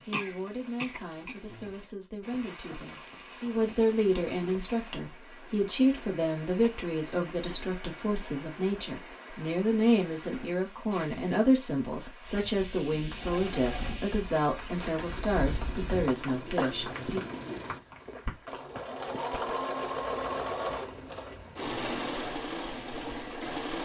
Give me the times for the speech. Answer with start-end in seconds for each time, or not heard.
0.1-17.2.